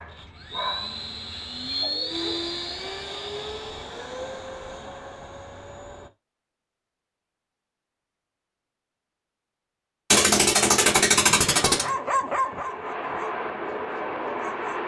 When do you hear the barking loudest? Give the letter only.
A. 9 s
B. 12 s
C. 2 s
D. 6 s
B.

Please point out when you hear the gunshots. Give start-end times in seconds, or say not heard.
10.1-11.9.